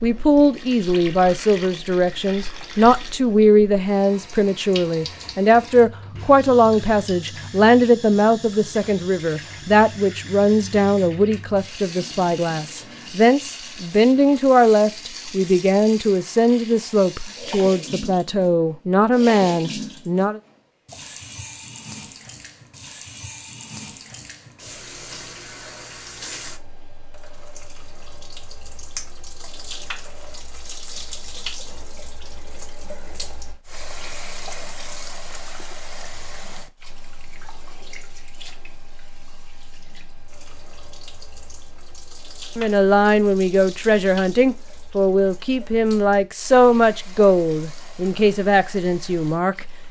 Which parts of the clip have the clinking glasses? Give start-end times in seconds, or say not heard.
28.9-29.6.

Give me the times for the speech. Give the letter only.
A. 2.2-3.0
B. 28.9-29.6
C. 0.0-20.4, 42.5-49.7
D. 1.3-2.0
C.